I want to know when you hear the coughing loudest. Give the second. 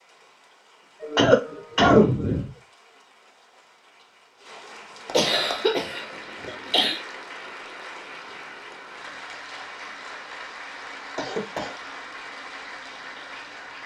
2 s.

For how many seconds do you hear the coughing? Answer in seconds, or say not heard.
4 s.